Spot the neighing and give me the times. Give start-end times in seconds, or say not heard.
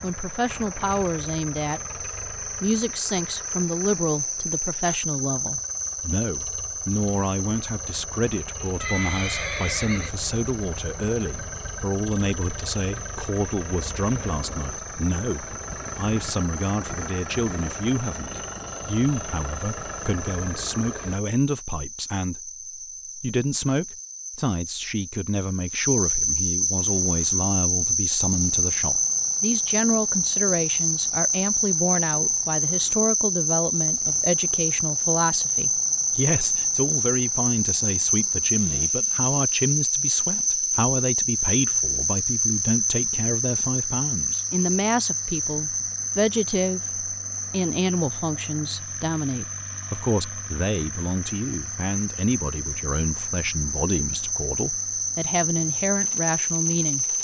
8.8-10.2.